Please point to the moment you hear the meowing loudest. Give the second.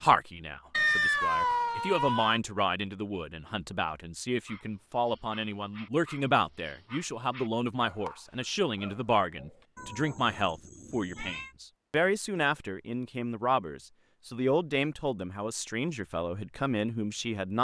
1 s.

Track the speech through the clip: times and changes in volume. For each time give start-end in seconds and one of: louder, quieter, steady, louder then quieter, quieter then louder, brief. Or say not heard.
0.0-17.5 steady.